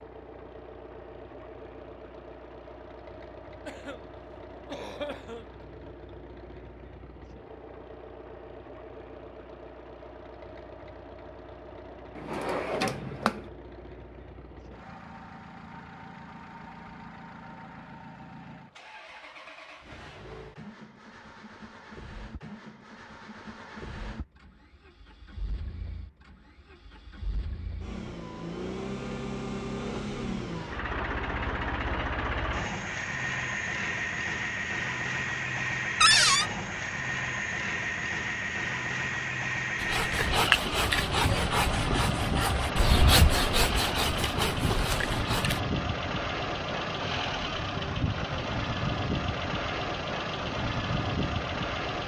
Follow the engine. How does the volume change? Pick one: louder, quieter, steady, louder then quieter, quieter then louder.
louder.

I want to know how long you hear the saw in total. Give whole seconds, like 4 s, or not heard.
6 s.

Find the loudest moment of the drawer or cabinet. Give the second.
36 s.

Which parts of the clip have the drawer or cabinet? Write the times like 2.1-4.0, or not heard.
12.2-13.4, 36.0-36.5.